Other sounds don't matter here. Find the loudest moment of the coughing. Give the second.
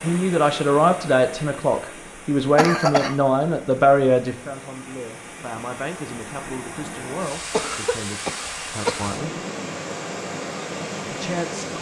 3 s.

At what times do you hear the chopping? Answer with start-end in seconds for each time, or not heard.
not heard.